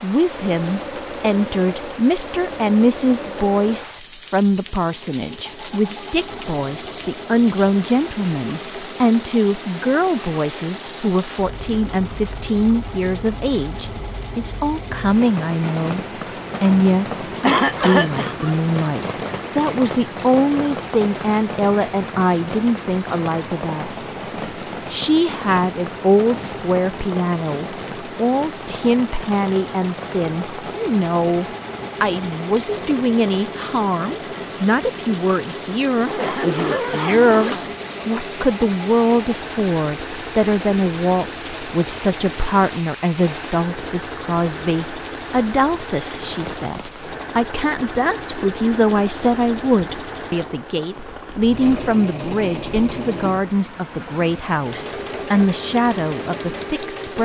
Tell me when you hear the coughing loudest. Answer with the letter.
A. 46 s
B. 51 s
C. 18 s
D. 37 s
C.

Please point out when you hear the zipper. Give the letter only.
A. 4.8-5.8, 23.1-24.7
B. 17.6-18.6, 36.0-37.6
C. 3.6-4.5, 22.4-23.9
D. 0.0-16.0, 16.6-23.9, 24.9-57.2
B.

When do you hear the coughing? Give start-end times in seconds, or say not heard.
17.4-18.4, 36.2-37.8.